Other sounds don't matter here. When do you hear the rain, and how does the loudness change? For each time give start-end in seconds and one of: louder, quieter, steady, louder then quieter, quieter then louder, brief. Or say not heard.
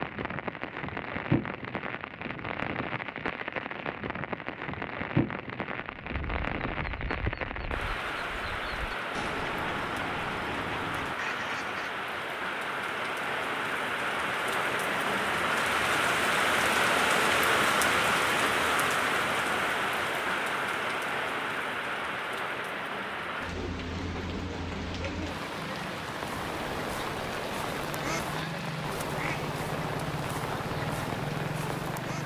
0.0-32.2 louder then quieter.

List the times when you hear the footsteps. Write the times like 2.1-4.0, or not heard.
not heard.